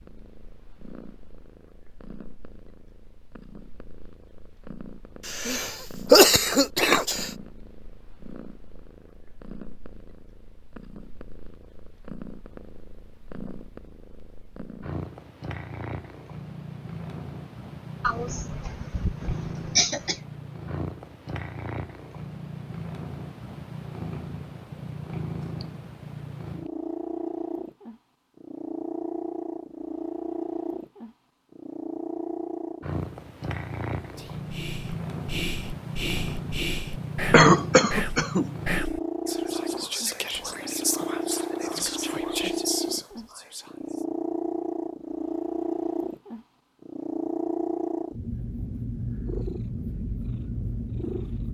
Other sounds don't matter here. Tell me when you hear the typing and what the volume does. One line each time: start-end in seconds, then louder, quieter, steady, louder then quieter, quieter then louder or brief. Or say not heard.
not heard.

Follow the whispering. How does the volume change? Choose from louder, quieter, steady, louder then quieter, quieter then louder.
steady.